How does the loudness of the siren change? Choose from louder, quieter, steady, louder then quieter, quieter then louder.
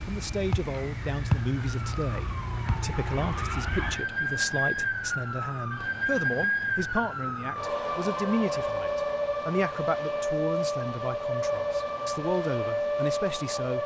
steady.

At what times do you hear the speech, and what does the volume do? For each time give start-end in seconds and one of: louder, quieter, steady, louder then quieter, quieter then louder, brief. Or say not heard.
0.1-13.8 steady.